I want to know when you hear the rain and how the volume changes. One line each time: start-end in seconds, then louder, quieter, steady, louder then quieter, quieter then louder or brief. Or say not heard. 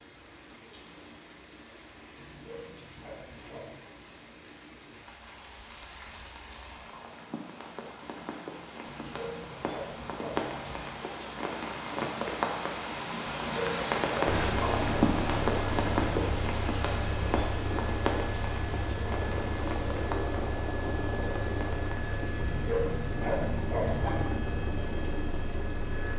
0.0-26.1 louder then quieter.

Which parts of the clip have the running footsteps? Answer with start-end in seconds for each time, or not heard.
not heard.